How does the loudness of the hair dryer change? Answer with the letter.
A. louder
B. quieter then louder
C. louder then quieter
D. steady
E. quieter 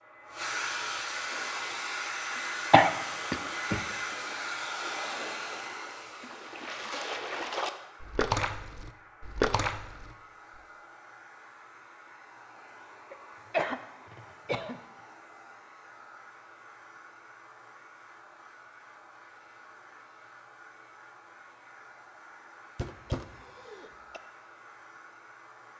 E.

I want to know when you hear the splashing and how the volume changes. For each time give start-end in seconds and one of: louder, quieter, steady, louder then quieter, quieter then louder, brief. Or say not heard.
1.1-10.6 louder.